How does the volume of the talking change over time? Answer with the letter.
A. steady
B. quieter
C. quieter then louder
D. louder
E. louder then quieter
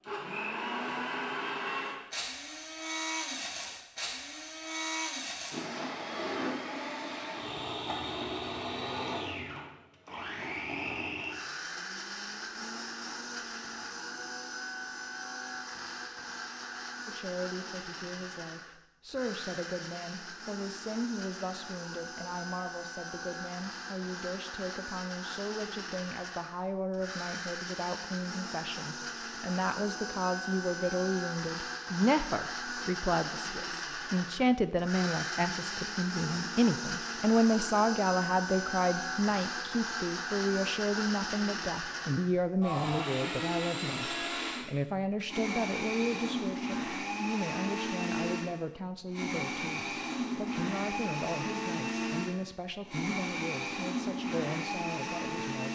E.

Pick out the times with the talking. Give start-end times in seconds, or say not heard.
17.1-55.6.